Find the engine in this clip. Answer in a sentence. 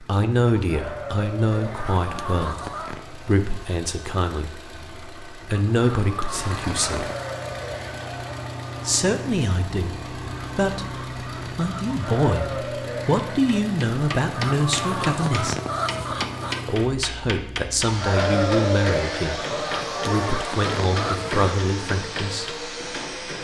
You can hear the engine from 0.0 to 23.3 s.